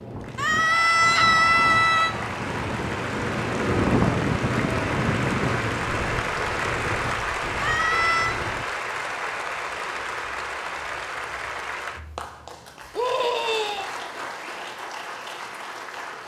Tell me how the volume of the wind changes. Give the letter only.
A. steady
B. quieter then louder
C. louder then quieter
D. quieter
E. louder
C.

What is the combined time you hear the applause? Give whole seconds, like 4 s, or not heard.
16 s.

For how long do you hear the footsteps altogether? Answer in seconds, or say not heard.
not heard.